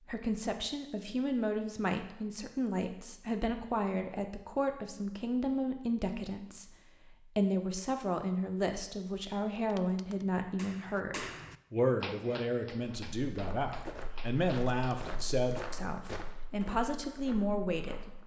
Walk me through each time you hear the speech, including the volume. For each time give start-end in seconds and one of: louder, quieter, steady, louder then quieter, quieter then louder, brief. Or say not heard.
0.1-18.2 steady.